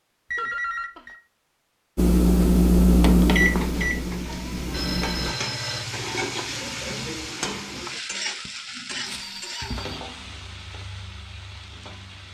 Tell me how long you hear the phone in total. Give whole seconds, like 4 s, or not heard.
3 s.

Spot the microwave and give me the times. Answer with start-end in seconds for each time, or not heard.
1.9-5.3.